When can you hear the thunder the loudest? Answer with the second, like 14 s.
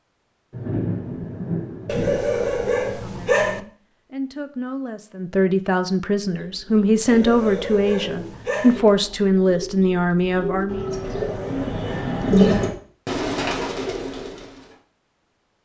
1 s.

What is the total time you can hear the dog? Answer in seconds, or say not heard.
5 s.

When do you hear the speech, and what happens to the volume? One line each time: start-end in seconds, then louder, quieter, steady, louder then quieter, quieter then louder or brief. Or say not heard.
2.9-10.9 louder.